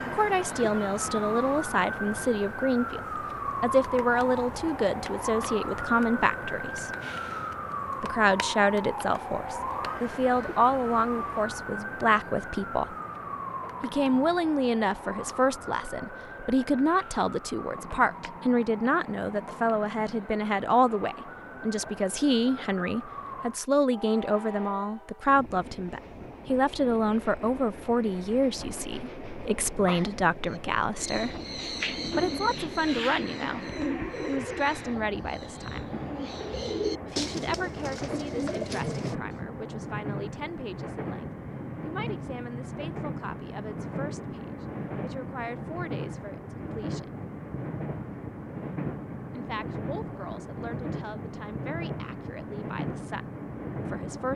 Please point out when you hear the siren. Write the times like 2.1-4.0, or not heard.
0.0-23.6.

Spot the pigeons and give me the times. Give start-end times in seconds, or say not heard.
30.4-39.4.